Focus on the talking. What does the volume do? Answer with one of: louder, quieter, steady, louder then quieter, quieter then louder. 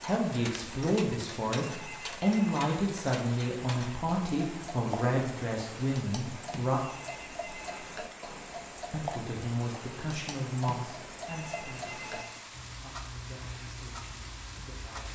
quieter.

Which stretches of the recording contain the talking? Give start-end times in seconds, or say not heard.
0.0-6.8, 8.9-15.0.